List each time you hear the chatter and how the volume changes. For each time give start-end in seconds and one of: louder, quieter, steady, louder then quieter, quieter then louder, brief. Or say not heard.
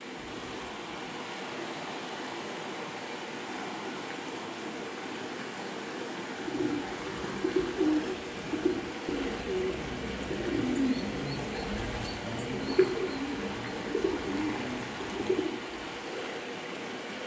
not heard.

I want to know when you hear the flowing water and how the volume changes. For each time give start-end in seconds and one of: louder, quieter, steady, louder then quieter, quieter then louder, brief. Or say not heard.
0.0-17.2 steady.